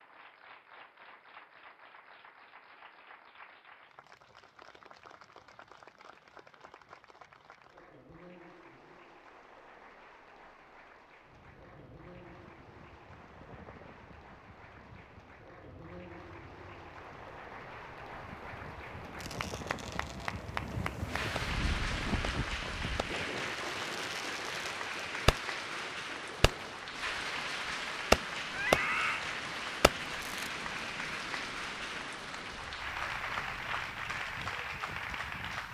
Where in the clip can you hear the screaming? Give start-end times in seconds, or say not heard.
28.5-29.2.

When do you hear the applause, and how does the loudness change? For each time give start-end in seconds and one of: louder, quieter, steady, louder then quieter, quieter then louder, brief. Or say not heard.
0.0-35.6 louder.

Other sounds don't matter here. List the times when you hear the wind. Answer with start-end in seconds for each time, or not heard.
11.2-35.6.